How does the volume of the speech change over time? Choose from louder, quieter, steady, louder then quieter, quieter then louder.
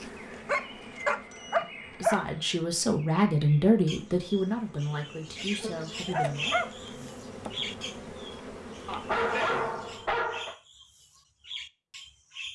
louder then quieter.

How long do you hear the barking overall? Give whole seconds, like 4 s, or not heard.
5 s.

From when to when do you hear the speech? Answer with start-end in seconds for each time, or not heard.
1.4-6.7.